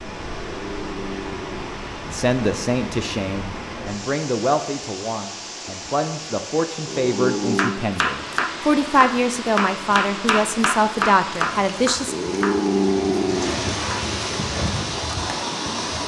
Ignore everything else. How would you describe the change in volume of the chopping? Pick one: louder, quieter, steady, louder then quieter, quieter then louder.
steady.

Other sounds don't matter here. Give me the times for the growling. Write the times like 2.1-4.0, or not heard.
0.5-1.8, 6.8-7.8, 12.1-13.7.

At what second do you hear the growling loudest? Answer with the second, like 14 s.
13 s.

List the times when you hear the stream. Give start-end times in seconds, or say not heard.
0.0-16.0.